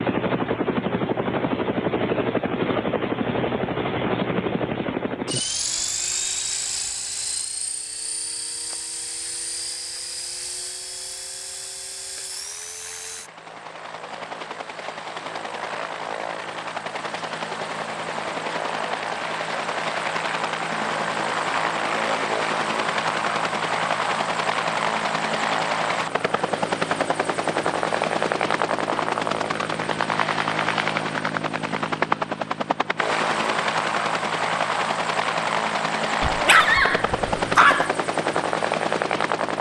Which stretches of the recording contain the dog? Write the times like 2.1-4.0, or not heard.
36.2-37.9.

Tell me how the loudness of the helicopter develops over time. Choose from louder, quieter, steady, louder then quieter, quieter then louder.
quieter then louder.